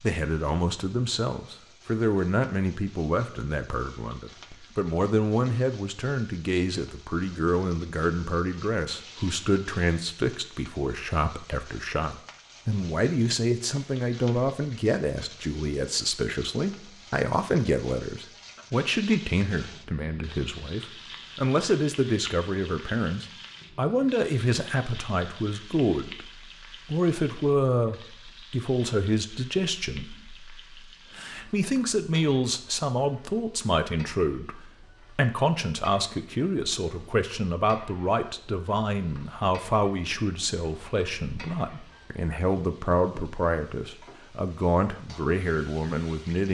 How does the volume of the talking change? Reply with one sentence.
The volume of the talking stays about the same.